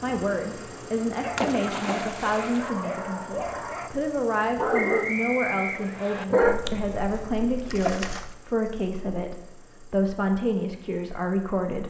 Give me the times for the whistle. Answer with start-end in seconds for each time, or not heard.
4.7-6.2.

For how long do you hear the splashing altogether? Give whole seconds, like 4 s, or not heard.
3 s.